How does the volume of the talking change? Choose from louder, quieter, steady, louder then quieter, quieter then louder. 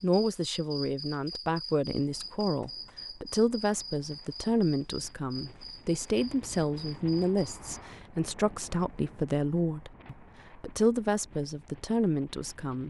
steady.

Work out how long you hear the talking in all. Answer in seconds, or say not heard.
13 s.